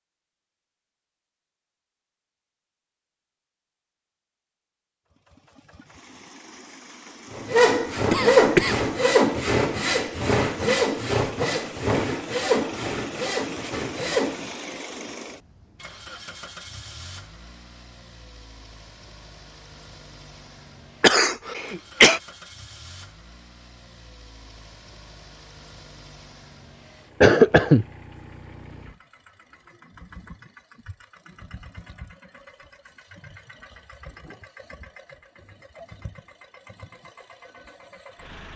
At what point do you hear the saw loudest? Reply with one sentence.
The loudest moment of the saw is at 8 seconds.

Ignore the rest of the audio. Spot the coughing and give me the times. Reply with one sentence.
You can hear the coughing from 8.1 to 8.8 s, from 21.0 to 22.2 s and from 27.2 to 27.9 s.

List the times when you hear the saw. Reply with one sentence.
The saw can be heard from 7.3 to 14.8 s.